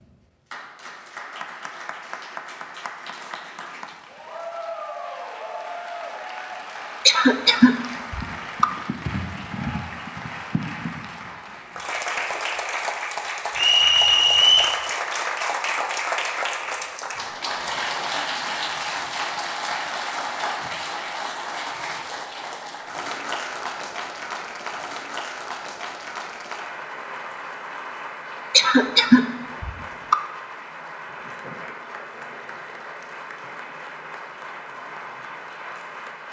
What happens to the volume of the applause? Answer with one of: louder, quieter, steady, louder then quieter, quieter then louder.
louder then quieter.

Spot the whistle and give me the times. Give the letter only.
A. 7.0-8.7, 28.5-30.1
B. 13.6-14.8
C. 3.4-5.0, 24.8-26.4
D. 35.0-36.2
B.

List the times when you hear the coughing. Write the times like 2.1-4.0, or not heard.
7.0-8.7, 28.5-30.1.